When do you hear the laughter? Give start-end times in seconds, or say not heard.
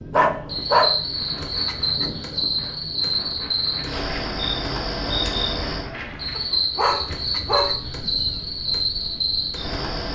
not heard.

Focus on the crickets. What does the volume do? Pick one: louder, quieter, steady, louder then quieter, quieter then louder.
steady.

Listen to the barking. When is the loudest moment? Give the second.
1 s.